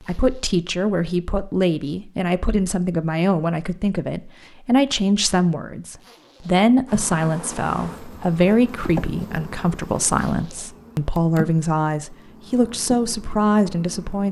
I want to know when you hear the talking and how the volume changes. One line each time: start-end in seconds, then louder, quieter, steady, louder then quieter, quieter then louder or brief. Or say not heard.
0.0-14.2 steady.